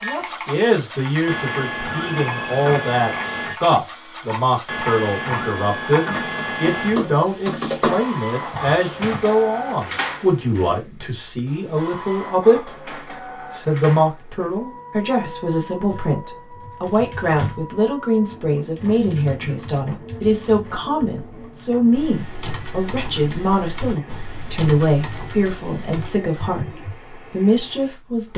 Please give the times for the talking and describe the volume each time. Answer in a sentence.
The talking can be heard from 0.0 to 12.7 s, at a steady volume; and from 13.5 to 28.3 s, at a steady volume.